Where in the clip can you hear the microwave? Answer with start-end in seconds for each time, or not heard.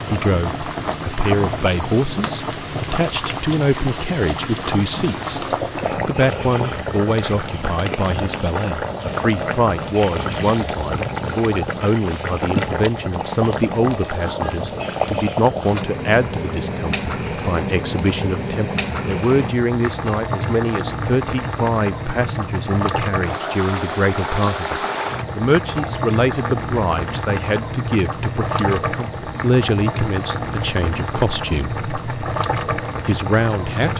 not heard.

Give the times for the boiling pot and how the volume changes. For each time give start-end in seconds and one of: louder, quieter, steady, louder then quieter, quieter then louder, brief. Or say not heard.
0.0-33.9 steady.